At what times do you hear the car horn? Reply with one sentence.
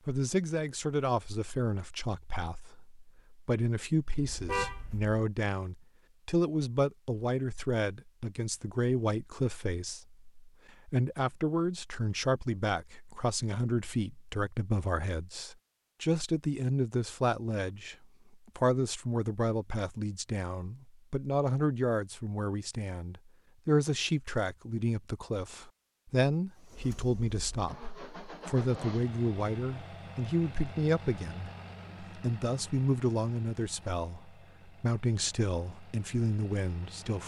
You can hear the car horn from 4.0 to 5.2 s.